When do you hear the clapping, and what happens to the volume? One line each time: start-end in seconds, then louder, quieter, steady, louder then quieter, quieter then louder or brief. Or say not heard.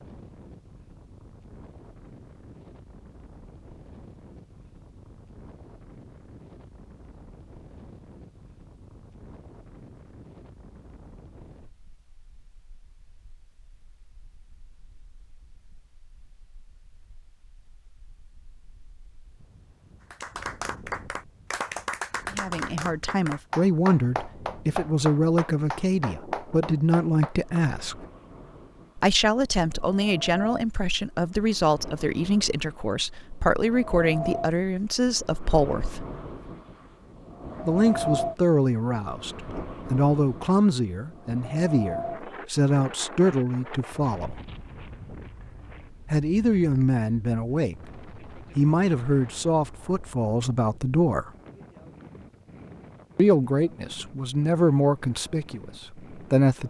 20.1-27.6 steady.